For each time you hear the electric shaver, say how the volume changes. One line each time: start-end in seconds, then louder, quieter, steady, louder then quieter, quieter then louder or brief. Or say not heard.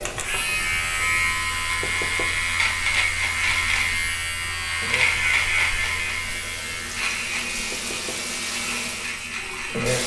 0.0-10.0 quieter.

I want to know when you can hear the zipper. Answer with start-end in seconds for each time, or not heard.
not heard.